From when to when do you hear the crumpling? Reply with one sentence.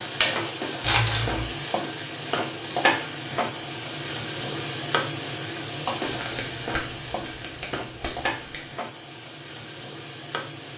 You can hear the crumpling from 0.8 to 1.5 s and from 6.0 to 8.7 s.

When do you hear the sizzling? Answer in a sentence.
You can hear the sizzling from 0.0 to 10.7 s.